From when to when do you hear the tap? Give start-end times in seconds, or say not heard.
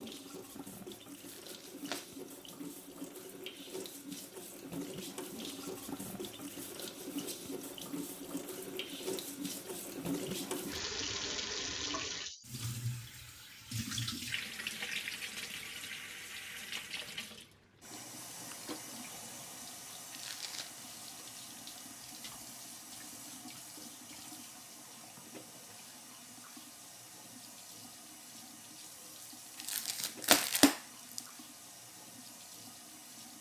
0.0-33.3.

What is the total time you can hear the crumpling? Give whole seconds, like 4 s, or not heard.
3 s.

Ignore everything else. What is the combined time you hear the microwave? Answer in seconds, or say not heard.
not heard.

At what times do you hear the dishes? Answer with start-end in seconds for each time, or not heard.
not heard.